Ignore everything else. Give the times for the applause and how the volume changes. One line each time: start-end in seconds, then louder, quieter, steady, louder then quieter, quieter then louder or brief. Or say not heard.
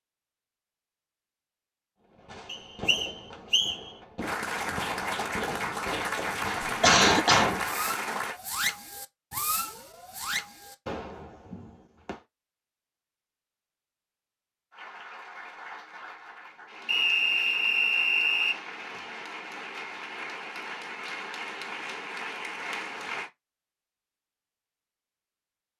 4.2-8.4 steady
14.7-23.3 louder.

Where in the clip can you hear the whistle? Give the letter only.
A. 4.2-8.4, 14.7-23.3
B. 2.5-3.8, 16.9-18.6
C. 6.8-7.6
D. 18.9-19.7
B.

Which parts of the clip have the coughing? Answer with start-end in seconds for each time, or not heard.
6.8-7.6.